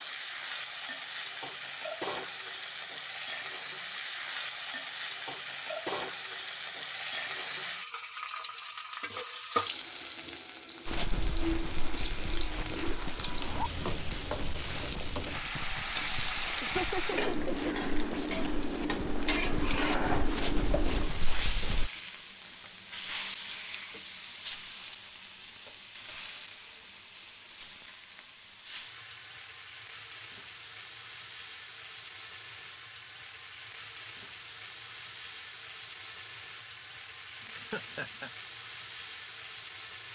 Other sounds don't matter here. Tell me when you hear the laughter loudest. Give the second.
17 s.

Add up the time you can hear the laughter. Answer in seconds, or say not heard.
2 s.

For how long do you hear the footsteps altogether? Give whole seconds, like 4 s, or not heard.
11 s.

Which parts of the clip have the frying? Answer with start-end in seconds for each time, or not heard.
0.0-40.1.